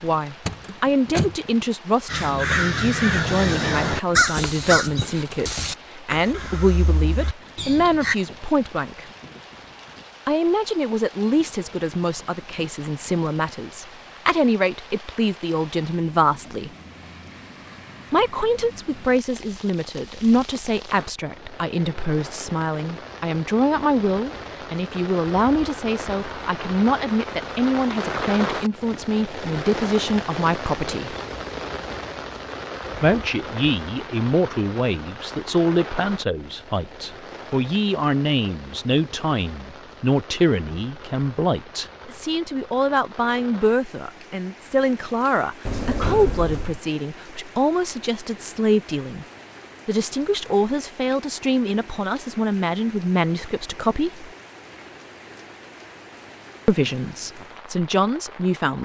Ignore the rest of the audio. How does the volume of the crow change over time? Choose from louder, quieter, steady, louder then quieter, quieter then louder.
quieter.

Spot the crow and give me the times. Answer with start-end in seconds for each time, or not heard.
2.0-8.2.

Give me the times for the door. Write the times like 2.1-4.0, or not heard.
0.5-1.4, 45.6-46.8.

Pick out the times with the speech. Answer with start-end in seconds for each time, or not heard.
0.0-9.1, 10.2-16.7, 18.1-31.1, 33.0-49.2, 49.9-54.3, 56.6-58.8.